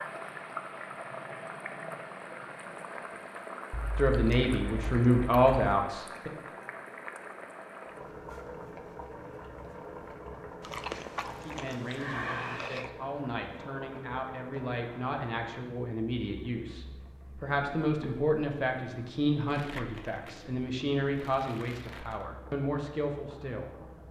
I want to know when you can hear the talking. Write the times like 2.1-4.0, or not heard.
4.0-6.3, 11.4-23.9.